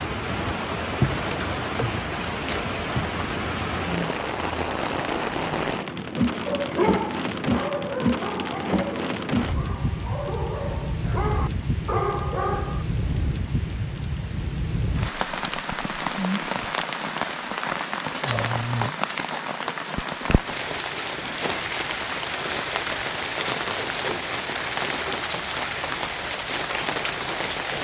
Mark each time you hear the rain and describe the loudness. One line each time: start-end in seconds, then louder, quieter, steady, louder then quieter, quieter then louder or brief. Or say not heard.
0.0-27.7 steady.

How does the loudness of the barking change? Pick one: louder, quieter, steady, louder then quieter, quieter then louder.
quieter then louder.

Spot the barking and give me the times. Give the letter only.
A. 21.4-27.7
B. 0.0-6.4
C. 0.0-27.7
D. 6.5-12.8
D.